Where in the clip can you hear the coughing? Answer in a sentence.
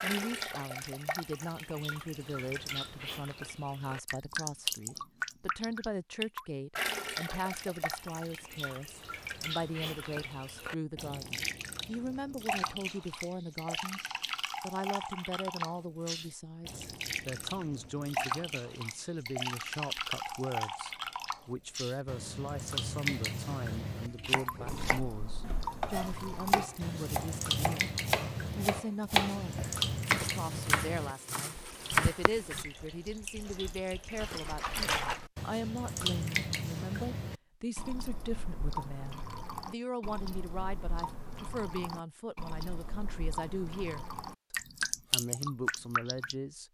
You can't hear the coughing here.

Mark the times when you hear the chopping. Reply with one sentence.
You can hear the chopping from 24.1 to 32.6 s.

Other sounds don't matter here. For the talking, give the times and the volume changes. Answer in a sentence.
The talking can be heard from 0.0 to 14.0 s, at a steady volume; and from 14.6 to 46.6 s, at a steady volume.